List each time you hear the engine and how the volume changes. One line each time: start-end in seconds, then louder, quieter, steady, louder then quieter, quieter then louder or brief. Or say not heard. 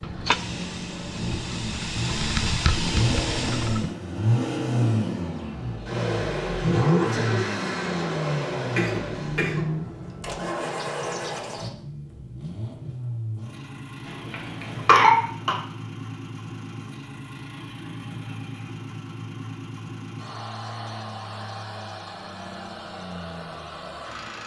0.0-24.4 quieter.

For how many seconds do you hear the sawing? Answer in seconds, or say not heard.
not heard.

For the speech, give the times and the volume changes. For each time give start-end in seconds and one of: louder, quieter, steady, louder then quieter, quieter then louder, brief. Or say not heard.
not heard.